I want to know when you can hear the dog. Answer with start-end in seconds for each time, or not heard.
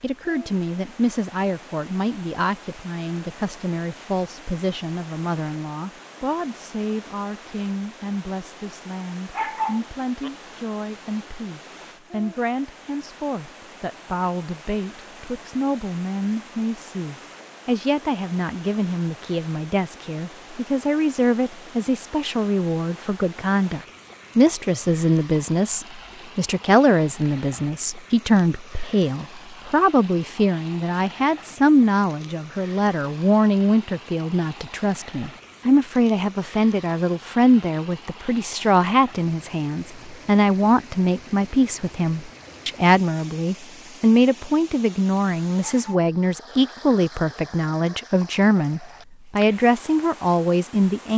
9.3-10.3, 45.6-46.5.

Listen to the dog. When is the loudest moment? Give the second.
10 s.